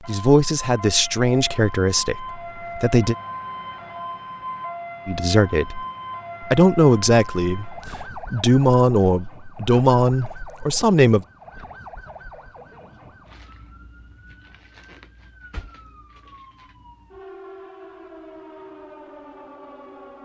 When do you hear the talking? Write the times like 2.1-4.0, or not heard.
0.1-3.1, 5.0-11.2.